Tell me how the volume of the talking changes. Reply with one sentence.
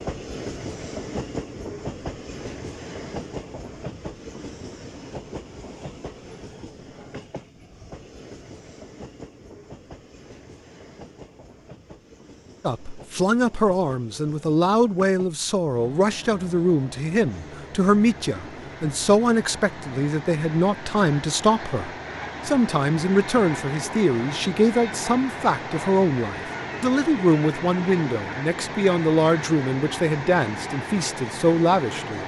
The loudness of the talking stays about the same.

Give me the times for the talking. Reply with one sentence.
The talking can be heard from 12.6 to 32.2 s.